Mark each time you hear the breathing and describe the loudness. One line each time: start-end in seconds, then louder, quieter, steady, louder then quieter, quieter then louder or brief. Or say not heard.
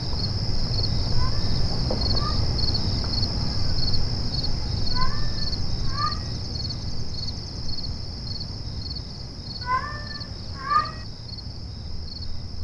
not heard.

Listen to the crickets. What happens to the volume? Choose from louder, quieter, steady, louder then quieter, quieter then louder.
quieter.